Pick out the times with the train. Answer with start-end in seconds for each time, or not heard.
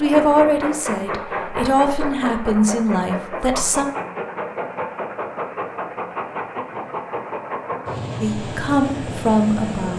0.0-9.9.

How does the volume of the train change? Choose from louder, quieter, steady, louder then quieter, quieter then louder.
steady.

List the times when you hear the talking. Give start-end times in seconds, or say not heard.
0.0-3.9, 8.2-9.9.